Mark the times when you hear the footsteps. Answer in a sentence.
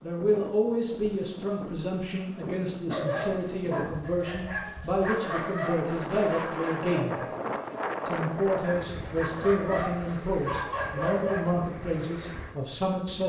You can't hear the footsteps here.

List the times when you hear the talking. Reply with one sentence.
You can hear the talking from 0.0 to 7.2 s and from 8.1 to 13.2 s.